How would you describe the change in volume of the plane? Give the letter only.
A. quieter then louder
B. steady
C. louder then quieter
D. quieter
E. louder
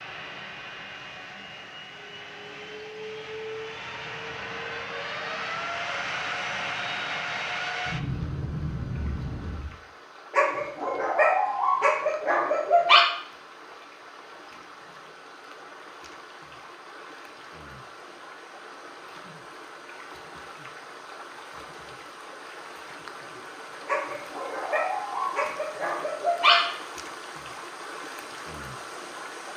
E.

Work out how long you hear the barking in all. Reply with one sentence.
The barking can be heard for 6 seconds in total.